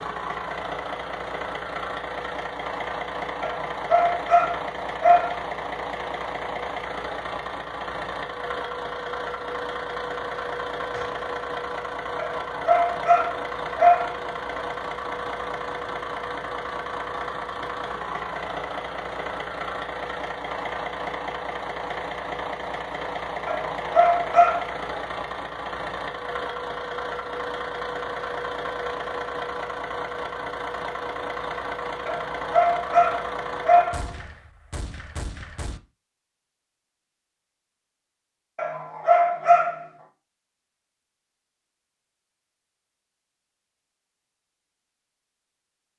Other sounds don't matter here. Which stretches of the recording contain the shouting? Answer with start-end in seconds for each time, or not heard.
not heard.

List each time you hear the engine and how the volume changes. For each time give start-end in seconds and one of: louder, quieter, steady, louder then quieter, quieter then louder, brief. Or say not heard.
0.0-34.2 steady.